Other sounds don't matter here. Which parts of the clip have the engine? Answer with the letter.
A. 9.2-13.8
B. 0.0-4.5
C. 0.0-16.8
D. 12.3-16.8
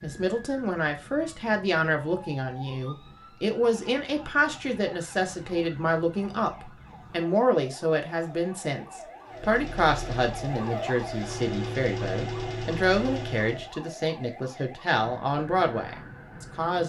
A.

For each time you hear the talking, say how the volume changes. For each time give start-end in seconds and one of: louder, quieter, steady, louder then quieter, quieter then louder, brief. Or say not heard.
0.0-16.8 steady.